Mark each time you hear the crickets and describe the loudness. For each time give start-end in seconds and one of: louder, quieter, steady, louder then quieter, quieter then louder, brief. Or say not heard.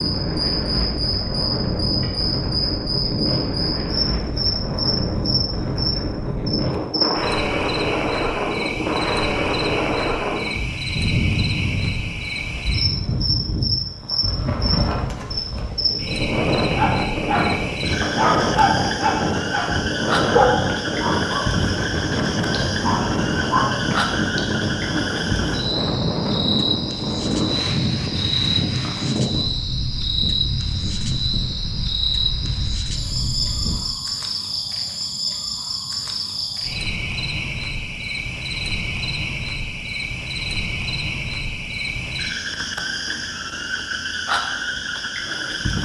0.0-45.8 steady.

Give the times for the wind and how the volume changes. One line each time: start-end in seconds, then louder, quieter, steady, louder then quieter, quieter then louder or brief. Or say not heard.
0.0-33.8 steady.